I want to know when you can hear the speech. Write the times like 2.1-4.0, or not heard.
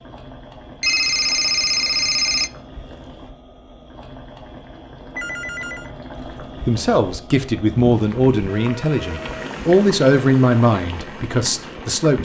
6.7-12.1.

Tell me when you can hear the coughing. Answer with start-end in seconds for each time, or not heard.
not heard.